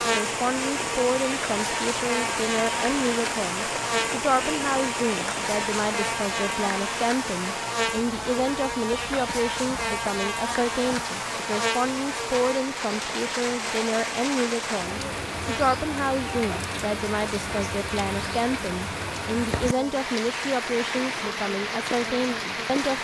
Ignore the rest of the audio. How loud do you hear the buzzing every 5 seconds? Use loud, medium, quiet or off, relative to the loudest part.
loud, loud, loud, medium, medium.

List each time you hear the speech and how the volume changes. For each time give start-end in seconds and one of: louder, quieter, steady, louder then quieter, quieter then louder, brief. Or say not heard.
0.0-23.0 steady.